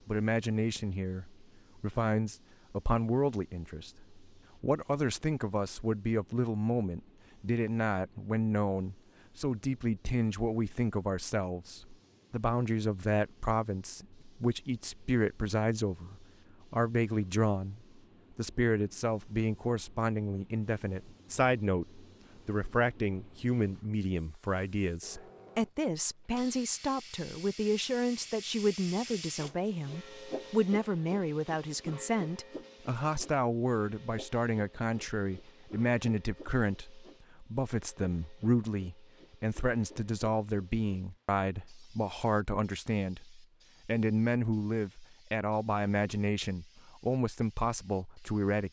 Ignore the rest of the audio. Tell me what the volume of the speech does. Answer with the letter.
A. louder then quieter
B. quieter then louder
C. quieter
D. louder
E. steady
E.